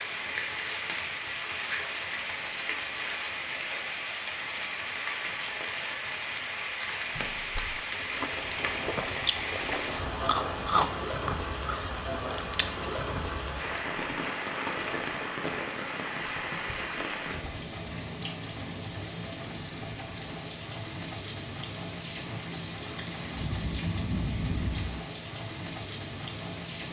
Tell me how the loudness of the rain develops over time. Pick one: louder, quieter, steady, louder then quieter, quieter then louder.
steady.